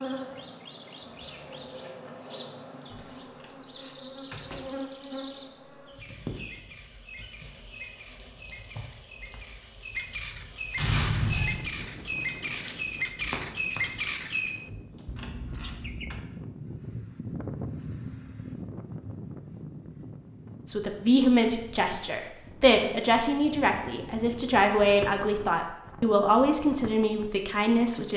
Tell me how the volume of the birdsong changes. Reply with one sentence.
The loudness of the birdsong goes up.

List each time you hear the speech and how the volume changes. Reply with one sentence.
You can hear the speech from 20.6 to 28.1 s, at a steady volume.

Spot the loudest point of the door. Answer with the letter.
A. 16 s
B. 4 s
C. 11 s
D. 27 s
B.